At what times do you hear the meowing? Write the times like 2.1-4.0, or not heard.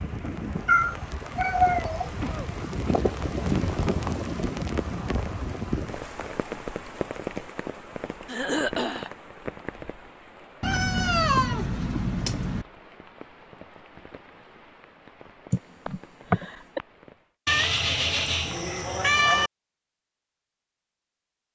0.7-2.1, 10.6-12.7, 17.4-19.5.